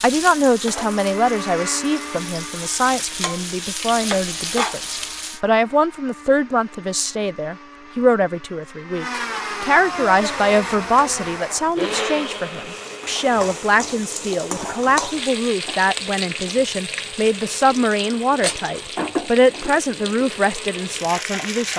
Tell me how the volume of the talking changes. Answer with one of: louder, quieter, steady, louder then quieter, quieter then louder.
steady.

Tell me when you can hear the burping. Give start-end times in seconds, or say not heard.
not heard.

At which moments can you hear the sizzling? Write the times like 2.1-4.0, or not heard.
0.0-5.4, 9.8-21.7.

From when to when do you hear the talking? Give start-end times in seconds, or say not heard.
0.0-21.7.